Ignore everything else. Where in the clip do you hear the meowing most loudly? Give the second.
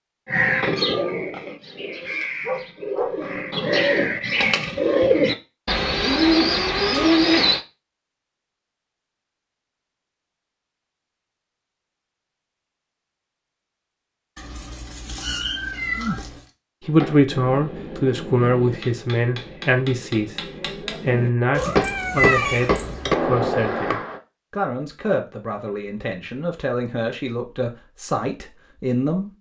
22 s.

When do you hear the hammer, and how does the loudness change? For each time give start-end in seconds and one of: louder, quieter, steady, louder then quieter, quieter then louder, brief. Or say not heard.
16.8-24.2 louder.